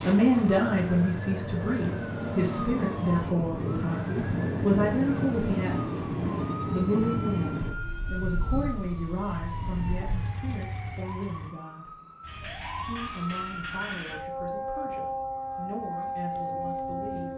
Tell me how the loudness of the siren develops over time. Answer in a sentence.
The volume of the siren goes down, then up.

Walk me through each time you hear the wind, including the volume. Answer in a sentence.
You can hear the wind from 0.0 to 10.2 s, getting louder then quieter.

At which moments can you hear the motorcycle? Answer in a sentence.
You can hear the motorcycle from 9.3 to 11.6 s.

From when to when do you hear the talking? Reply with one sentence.
You can hear the talking from 0.0 to 11.9 s and from 12.8 to 17.3 s.